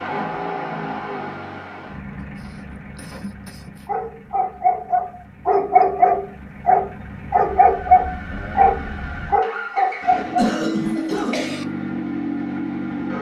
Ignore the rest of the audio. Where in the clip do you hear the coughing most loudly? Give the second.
11 s.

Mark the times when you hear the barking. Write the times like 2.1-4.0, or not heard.
3.9-11.2.